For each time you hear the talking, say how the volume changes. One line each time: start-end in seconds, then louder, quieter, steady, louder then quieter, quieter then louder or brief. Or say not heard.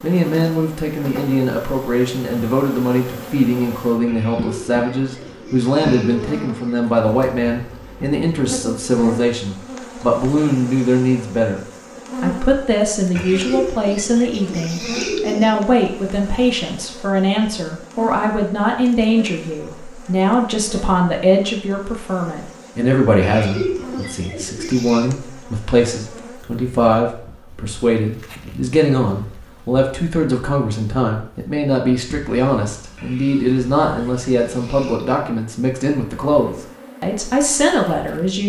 0.0-11.6 steady
12.2-38.4 steady.